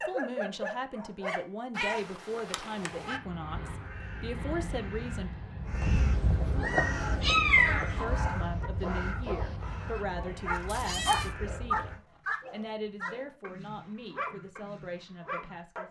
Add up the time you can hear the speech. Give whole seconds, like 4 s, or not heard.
13 s.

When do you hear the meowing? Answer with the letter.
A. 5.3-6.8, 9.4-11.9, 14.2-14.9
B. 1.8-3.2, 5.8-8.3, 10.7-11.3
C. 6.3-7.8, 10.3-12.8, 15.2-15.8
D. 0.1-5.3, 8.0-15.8
B.